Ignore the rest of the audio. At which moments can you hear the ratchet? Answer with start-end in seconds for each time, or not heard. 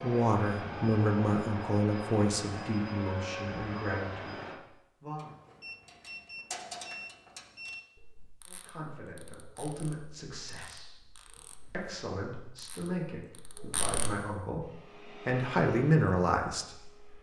5.2-14.1.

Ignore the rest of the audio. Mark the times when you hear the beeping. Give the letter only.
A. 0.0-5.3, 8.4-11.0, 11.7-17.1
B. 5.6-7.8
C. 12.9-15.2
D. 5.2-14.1
B.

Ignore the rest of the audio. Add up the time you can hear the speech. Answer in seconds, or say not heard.
13 s.